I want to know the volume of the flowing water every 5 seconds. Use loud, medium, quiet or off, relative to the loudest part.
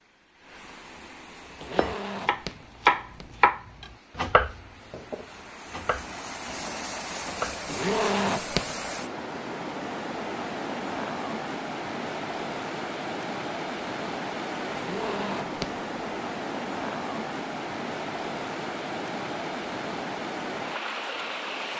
quiet, loud, loud, loud, loud.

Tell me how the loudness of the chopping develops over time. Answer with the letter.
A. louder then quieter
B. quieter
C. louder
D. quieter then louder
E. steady
B.